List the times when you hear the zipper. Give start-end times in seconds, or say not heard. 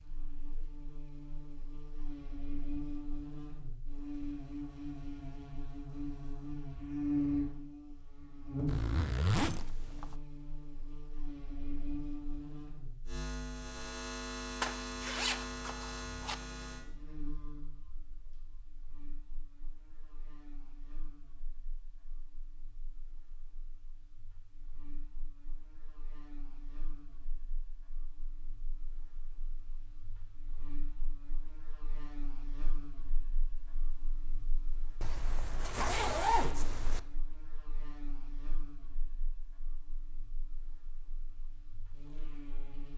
8.7-10.2, 14.6-16.4, 35.0-37.0.